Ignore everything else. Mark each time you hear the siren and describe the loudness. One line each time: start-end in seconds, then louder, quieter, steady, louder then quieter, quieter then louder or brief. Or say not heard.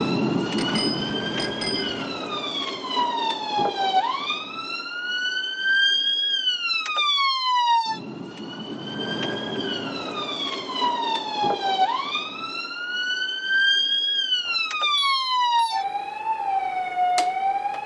0.0-17.8 steady.